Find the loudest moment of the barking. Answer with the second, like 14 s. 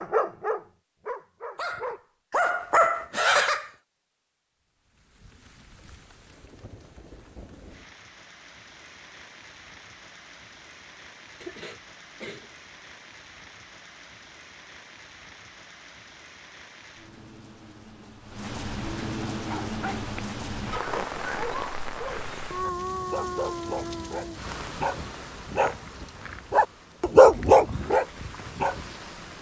27 s.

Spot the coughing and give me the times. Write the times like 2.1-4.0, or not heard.
11.4-12.5.